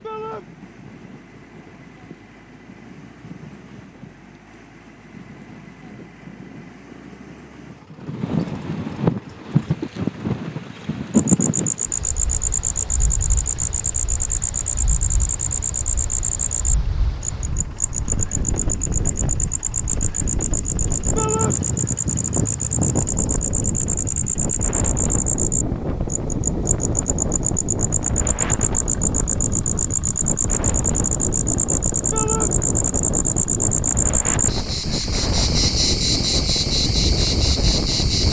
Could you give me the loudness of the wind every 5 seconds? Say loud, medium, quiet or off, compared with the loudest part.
quiet, loud, loud, medium, loud, loud, loud, loud.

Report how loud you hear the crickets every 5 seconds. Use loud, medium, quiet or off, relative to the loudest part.
off, off, loud, loud, loud, loud, loud, loud.